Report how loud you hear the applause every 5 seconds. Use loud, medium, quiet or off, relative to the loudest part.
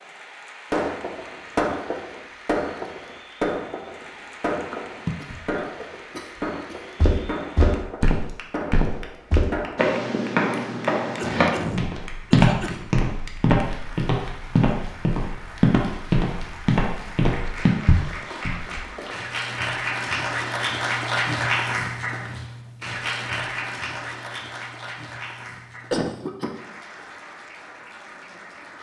quiet, quiet, quiet, medium, loud, quiet.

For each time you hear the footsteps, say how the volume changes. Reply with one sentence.
You can hear the footsteps from 7.0 to 18.8 s, at a steady volume.